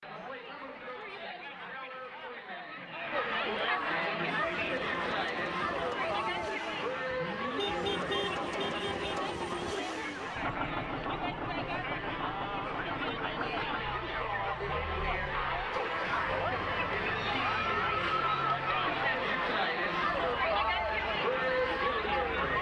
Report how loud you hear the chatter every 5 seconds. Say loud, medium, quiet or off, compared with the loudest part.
medium, medium, medium, loud, loud.